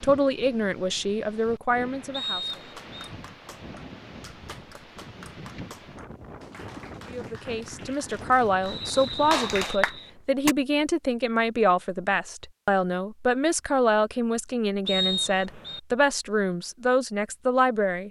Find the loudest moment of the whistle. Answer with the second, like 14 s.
15 s.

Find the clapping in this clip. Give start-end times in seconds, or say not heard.
2.4-10.6.